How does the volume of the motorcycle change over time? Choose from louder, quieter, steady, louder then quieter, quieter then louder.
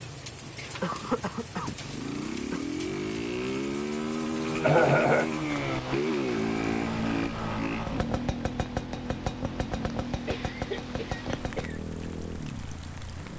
louder then quieter.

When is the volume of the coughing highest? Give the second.
5 s.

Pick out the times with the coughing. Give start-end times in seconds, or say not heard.
0.8-2.6, 4.6-5.3, 10.2-11.8.